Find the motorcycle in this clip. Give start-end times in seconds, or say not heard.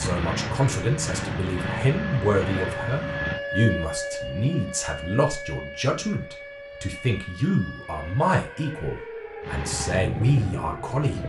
0.0-3.4, 9.4-11.2.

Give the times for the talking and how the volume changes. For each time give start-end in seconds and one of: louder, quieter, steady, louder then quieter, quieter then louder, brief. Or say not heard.
0.0-11.2 steady.